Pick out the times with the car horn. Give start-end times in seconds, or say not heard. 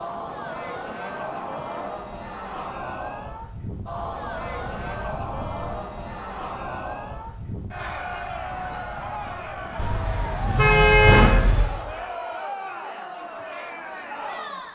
9.8-11.7.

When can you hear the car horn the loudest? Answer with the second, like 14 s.
11 s.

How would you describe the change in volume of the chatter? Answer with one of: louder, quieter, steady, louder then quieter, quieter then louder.
steady.